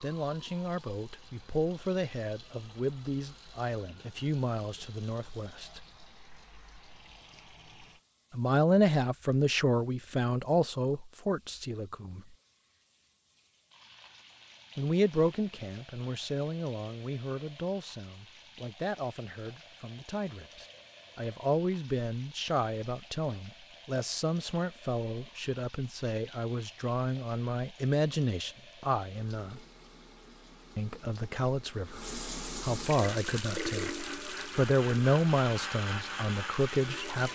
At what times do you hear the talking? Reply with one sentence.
You can hear the talking from 0.0 to 5.8 s, from 8.3 to 12.2 s, from 14.8 to 29.6 s, from 30.8 to 33.9 s and from 34.5 to 37.2 s.